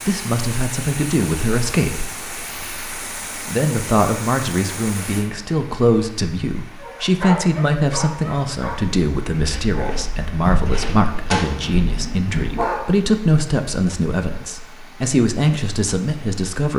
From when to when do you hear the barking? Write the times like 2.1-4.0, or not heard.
6.8-12.8.